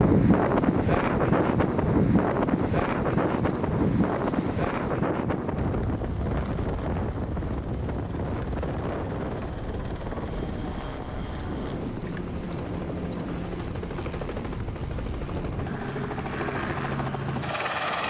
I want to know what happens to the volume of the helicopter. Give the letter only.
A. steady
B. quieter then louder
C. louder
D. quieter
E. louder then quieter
C.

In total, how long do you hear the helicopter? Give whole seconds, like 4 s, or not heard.
18 s.